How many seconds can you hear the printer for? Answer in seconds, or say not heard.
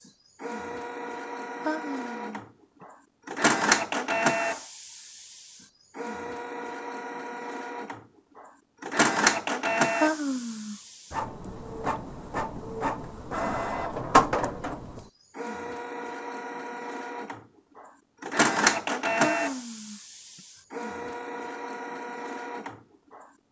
22 s.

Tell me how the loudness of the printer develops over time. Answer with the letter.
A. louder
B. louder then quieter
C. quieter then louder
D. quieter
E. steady
E.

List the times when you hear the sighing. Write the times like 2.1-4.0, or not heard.
1.6-2.9, 10.0-11.2, 19.2-20.4.